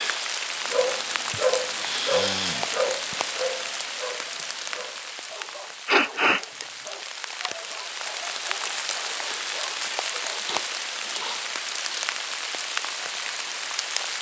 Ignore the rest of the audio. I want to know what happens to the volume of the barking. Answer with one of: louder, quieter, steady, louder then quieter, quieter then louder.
quieter.